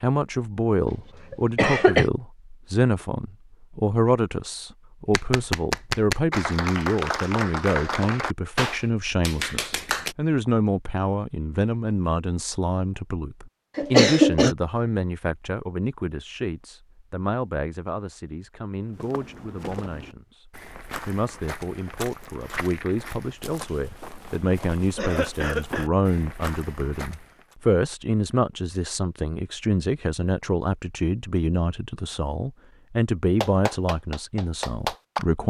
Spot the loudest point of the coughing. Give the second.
14 s.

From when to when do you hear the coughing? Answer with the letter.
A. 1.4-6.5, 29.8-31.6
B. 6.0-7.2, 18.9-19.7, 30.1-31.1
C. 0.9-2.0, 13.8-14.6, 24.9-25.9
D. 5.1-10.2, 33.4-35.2
C.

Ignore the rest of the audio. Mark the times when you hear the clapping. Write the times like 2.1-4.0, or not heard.
5.1-10.2, 33.4-35.2.